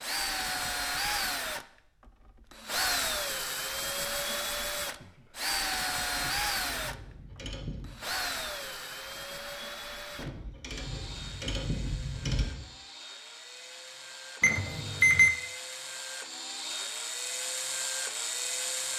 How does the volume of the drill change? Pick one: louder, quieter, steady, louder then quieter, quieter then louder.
quieter then louder.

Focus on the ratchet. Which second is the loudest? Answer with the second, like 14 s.
12 s.